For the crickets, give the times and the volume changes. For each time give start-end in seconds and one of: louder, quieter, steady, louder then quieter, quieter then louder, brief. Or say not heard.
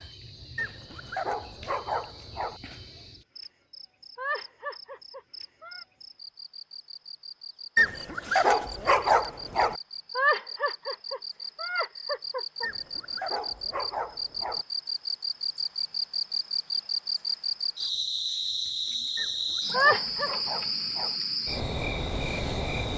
0.0-22.9 louder.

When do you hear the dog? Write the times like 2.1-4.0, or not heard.
0.6-2.6, 7.8-9.8, 12.6-14.7, 19.1-21.2.